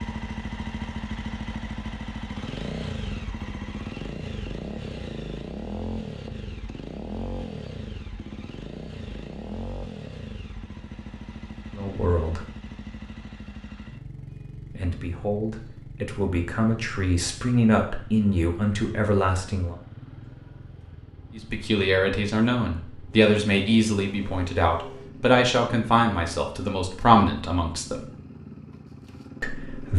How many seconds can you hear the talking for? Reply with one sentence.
The talking can be heard for 13 seconds in total.